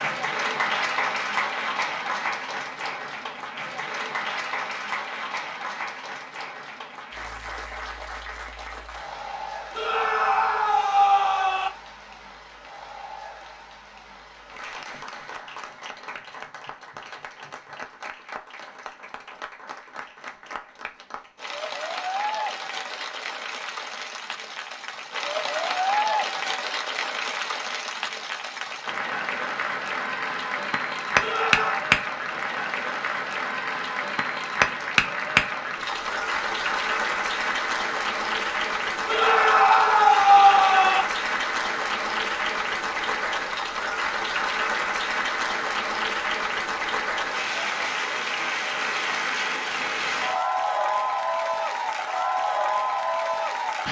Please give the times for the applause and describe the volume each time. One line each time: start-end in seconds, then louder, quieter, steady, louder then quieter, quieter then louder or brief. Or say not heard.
0.0-53.8 quieter then louder.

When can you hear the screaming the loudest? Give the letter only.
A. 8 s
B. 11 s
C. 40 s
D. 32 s
C.